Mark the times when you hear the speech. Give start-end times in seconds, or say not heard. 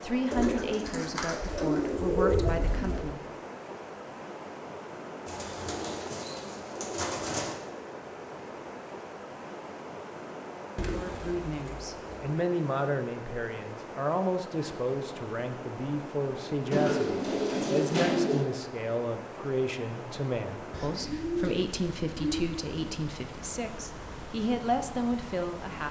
0.0-3.4, 10.9-25.8.